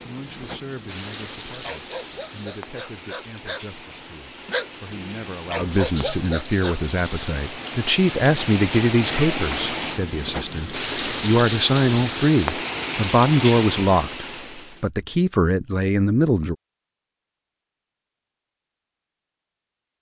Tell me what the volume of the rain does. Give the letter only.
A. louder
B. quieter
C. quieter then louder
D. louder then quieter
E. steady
A.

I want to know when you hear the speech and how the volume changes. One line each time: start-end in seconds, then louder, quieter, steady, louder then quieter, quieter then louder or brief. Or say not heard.
0.0-16.6 louder.